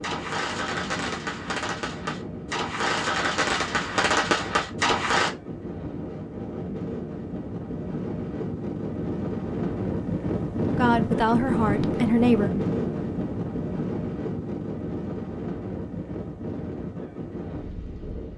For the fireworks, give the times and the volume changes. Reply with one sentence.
The fireworks can be heard from 0.0 to 5.3 s, getting louder.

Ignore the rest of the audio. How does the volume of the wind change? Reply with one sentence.
The loudness of the wind goes up, then down.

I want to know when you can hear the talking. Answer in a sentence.
You can hear the talking from 10.8 to 12.5 s.